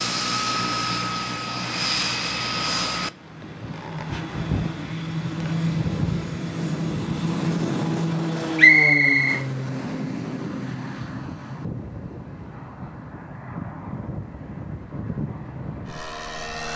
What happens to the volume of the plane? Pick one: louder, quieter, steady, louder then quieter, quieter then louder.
quieter.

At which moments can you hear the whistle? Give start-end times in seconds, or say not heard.
8.6-9.4.